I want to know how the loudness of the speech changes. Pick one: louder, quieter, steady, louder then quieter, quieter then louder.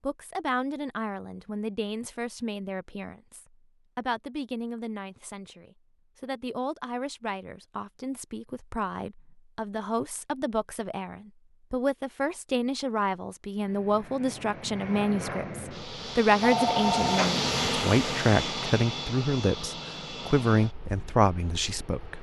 louder.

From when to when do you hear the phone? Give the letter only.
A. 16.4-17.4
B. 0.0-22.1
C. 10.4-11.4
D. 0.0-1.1
A.